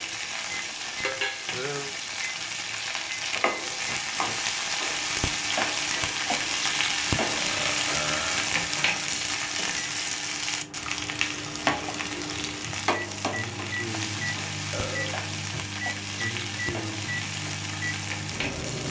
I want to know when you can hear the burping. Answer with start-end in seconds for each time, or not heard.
1.1-1.9, 7.2-9.0, 14.7-15.2.